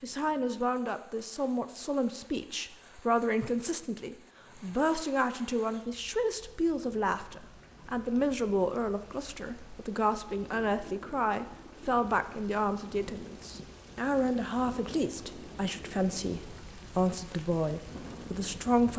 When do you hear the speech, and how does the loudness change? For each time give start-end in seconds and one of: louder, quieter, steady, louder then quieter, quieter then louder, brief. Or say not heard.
0.0-18.9 steady.